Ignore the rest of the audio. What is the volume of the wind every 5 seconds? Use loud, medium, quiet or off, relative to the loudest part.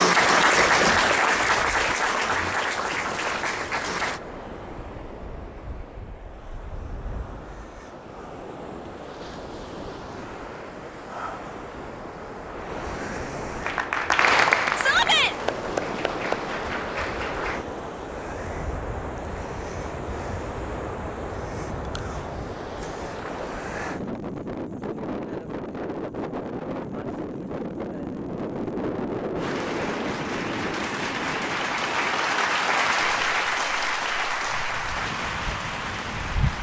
medium, medium, medium, loud, loud, loud, medium, loud.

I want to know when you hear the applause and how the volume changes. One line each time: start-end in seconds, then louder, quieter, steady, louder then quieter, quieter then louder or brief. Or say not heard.
0.0-4.2 quieter
13.6-17.6 quieter
29.4-36.5 louder then quieter.